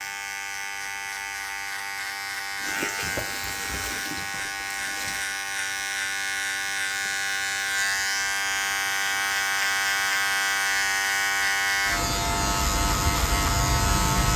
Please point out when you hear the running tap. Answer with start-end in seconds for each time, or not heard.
2.6-5.2.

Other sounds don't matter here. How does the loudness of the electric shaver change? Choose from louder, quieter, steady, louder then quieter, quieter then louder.
louder.